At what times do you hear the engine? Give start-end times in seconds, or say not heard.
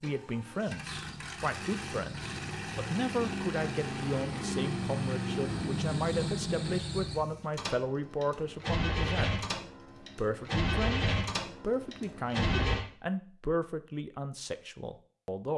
0.0-12.8.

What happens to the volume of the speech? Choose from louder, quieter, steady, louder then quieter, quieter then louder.
steady.